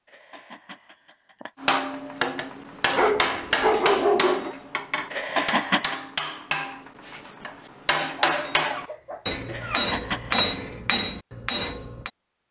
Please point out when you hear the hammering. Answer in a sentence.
The hammering can be heard from 1.6 to 12.1 s.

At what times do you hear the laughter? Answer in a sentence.
The laughter can be heard from 0.1 to 1.5 s, from 5.1 to 6.0 s and from 9.4 to 10.5 s.